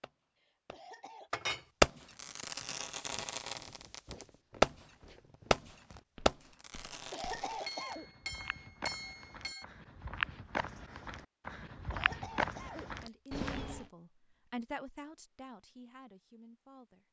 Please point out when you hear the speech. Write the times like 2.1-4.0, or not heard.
13.0-17.0.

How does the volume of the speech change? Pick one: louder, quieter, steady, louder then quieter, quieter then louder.
louder then quieter.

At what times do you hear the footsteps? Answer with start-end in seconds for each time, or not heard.
2.2-13.8.